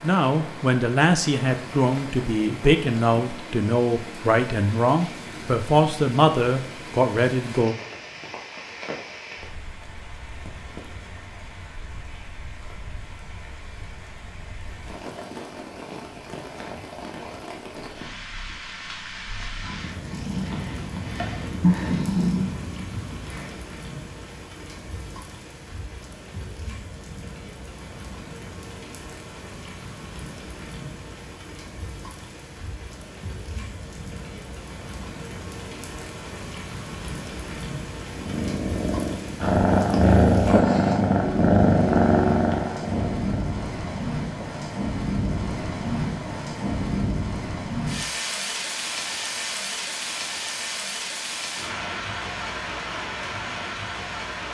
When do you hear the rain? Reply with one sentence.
You can hear the rain from 0.0 to 54.5 s.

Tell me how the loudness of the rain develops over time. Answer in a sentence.
The volume of the rain goes up.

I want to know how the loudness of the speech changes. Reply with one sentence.
The volume of the speech stays about the same.